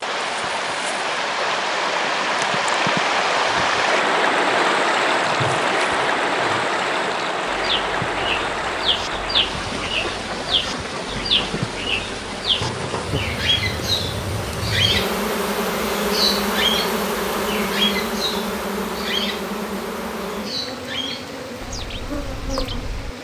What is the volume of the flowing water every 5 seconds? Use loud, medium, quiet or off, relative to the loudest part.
loud, loud, medium, quiet, quiet.